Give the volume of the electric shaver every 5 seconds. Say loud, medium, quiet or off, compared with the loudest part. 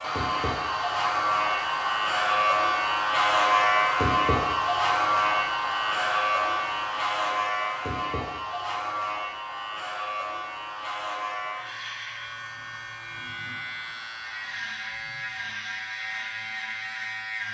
loud, loud, medium, medium.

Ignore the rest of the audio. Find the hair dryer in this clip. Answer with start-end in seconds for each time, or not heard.
0.0-14.7.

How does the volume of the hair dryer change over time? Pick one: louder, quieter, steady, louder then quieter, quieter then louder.
quieter.